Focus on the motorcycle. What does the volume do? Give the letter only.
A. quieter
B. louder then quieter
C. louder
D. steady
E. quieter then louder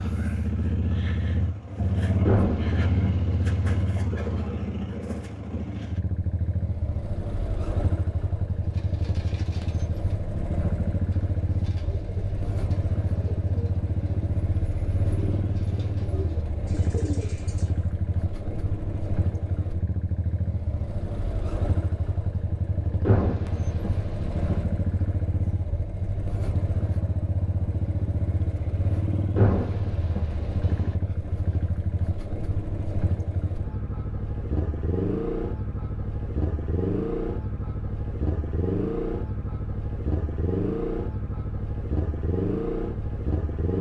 D.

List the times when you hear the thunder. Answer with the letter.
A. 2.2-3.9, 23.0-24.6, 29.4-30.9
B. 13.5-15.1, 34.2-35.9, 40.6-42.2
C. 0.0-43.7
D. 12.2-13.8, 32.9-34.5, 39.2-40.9
A.